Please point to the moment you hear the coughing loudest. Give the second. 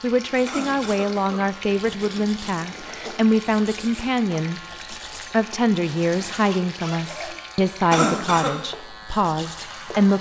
8 s.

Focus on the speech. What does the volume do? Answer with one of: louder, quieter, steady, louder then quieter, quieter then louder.
steady.